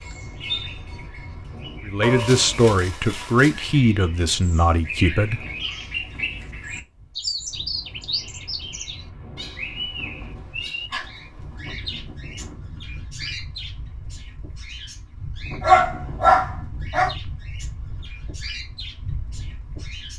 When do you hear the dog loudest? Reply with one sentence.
The loudest moment of the dog is at 16 seconds.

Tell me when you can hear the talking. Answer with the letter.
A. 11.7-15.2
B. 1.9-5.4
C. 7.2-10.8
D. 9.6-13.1
B.